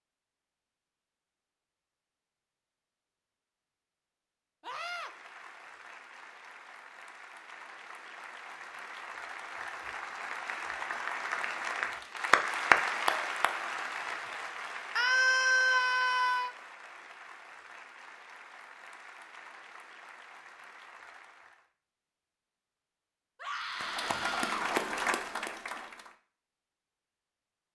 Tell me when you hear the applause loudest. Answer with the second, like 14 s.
13 s.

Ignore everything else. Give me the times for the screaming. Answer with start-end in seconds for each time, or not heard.
4.6-5.1, 14.9-16.5, 23.4-24.6.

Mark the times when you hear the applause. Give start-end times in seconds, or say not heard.
4.9-21.7, 23.6-26.1.